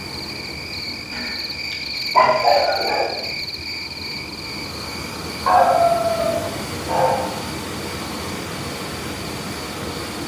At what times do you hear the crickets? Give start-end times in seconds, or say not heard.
0.0-10.2.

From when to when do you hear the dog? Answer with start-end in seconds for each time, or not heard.
1.1-3.1, 5.5-7.3.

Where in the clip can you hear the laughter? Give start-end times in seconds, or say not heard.
not heard.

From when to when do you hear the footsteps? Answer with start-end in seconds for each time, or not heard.
not heard.